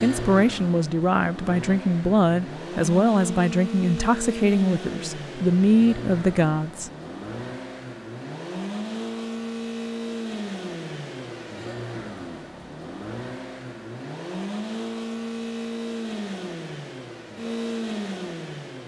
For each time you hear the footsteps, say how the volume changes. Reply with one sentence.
You can't hear the footsteps here.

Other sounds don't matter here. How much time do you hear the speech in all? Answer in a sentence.
You can hear the speech for 7 seconds altogether.